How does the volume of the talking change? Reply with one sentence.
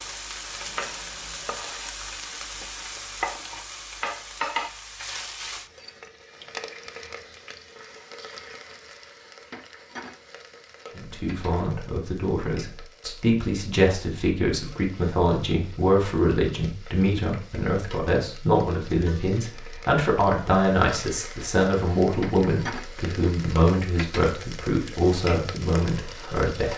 The volume of the talking stays about the same.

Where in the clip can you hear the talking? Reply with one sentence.
The talking can be heard from 10.9 to 26.7 s.